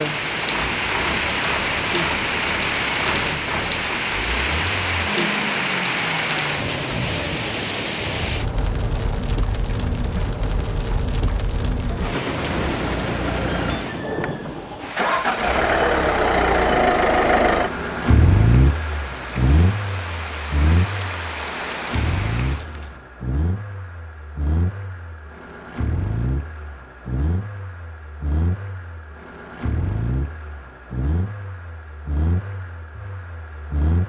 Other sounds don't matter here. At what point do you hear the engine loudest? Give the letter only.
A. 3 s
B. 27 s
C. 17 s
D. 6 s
C.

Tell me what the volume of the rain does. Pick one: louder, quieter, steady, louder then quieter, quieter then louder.
quieter.